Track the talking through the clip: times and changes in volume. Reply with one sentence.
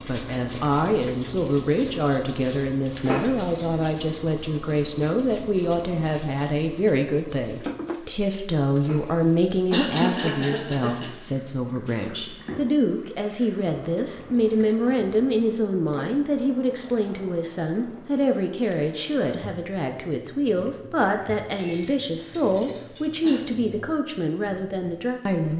You can hear the talking from 0.0 to 25.5 s, at a steady volume.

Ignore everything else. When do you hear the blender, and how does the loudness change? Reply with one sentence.
You can't hear the blender here.